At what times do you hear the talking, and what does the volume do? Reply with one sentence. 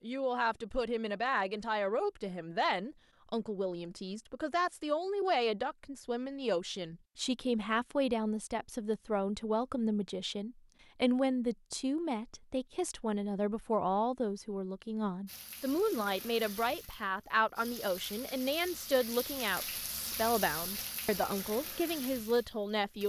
The talking can be heard from 0.0 to 23.0 s, at a steady volume.